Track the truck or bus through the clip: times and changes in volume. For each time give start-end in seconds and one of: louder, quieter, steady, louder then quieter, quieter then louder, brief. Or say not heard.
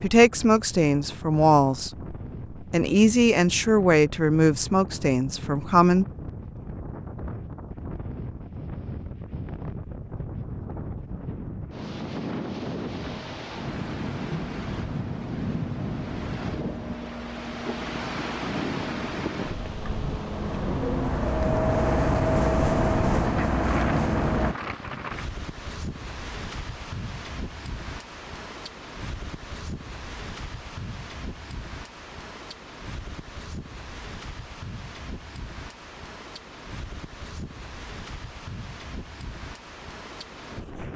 13.0-24.6 louder.